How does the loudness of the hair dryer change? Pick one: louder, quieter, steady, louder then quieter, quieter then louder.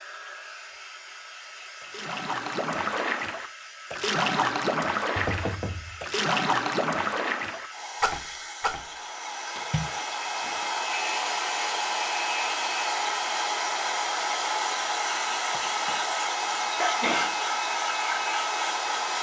louder.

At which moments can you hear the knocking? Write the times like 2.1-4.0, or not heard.
5.2-6.0, 15.5-16.0.